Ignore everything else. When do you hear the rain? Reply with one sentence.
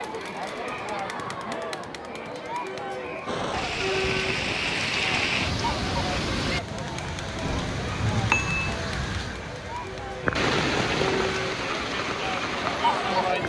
You can hear the rain from 3.2 to 13.4 s.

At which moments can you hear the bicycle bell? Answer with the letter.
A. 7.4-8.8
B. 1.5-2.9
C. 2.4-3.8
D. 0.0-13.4
A.